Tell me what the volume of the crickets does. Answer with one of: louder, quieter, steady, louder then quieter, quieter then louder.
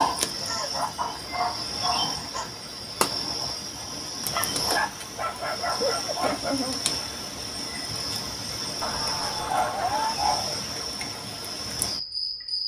steady.